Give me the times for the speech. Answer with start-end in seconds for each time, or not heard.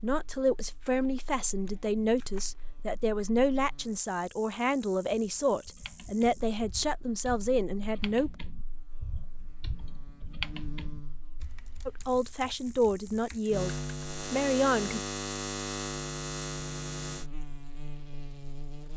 0.0-8.3, 11.8-15.0.